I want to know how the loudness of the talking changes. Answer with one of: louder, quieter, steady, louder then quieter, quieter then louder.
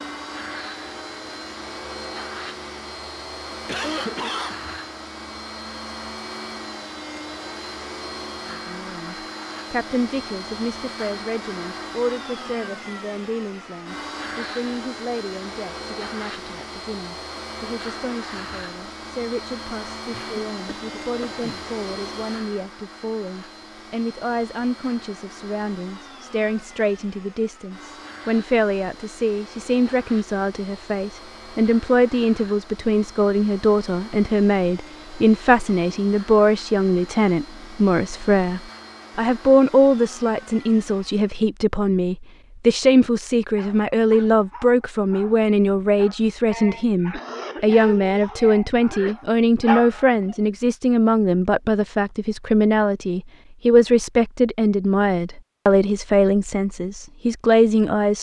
louder.